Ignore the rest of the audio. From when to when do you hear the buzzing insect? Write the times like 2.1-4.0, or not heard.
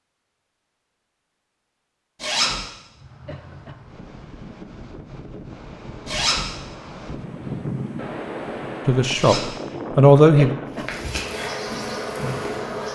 10.7-12.9.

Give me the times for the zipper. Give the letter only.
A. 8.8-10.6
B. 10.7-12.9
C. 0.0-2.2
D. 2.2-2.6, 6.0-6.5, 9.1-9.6
D.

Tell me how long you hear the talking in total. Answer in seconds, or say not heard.
2 s.